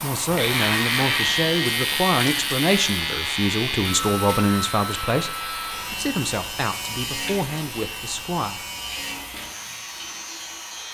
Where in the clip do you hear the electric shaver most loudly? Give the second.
1 s.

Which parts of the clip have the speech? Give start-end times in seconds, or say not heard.
0.0-8.6.